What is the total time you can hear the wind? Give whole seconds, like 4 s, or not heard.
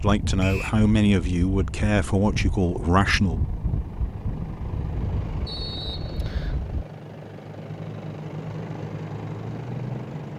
7 s.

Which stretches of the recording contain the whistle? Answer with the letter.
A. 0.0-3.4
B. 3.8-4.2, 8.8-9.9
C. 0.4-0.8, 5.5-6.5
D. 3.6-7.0
C.